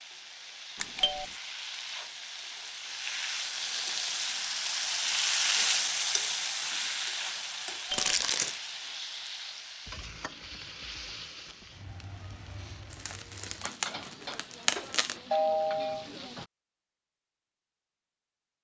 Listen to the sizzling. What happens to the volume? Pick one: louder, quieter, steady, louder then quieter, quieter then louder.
louder then quieter.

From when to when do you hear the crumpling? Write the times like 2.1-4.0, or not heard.
0.8-1.4, 7.9-8.6, 13.1-15.2.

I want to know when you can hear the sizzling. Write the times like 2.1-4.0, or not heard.
0.0-16.5.